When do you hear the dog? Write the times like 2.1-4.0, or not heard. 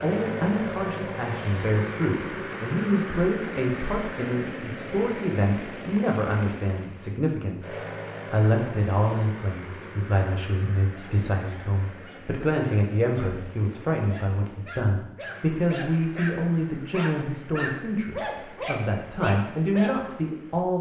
10.8-19.9.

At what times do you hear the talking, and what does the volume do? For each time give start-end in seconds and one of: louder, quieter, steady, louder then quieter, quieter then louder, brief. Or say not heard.
0.0-20.7 steady.